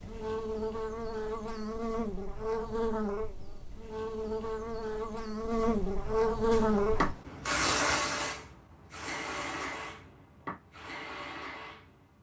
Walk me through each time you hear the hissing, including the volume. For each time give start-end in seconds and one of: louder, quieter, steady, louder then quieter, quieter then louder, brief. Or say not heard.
6.5-12.1 quieter.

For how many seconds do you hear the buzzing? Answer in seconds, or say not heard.
7 s.